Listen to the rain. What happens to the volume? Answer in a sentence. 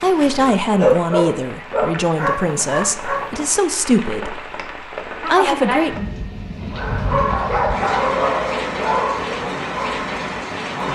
The volume of the rain goes up.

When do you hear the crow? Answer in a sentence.
The crow can't be heard in this clip.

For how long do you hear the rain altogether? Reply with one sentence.
The rain can be heard for 11 seconds in total.